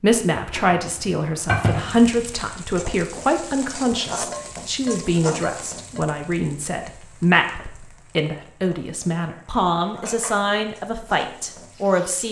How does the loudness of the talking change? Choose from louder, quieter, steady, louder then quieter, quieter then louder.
steady.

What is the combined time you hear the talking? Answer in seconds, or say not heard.
12 s.